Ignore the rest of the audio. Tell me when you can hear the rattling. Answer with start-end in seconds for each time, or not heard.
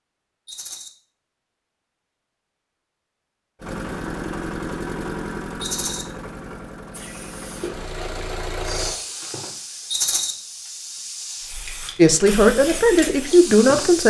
0.5-0.9, 5.6-6.0, 9.9-10.3.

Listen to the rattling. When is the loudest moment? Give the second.
10 s.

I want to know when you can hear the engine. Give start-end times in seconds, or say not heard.
3.6-8.9.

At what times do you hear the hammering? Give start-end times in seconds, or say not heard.
not heard.